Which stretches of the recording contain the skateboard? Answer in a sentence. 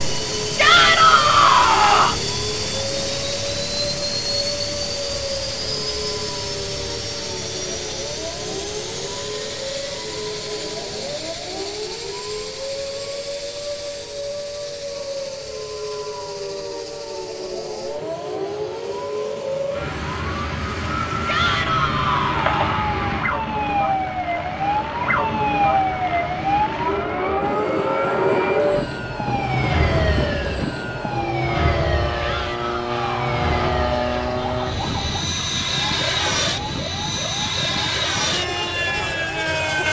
You can't hear the skateboard here.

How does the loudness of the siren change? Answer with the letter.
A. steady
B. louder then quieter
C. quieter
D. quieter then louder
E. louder
B.